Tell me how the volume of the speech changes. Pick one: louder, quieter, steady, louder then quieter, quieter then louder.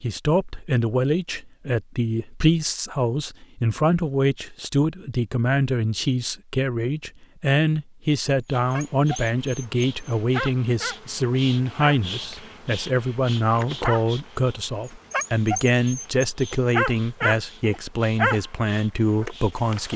steady.